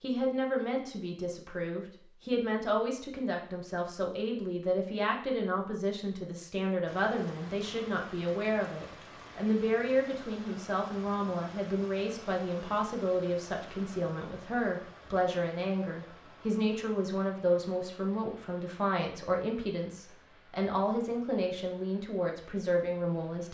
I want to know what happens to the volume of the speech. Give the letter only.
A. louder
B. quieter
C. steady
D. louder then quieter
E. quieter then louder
C.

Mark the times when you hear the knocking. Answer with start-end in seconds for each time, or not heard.
not heard.